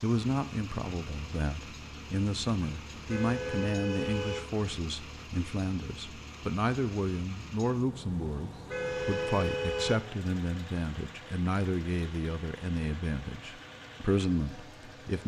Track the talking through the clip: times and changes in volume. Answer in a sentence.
You can hear the talking from 0.0 to 15.2 s, at a steady volume.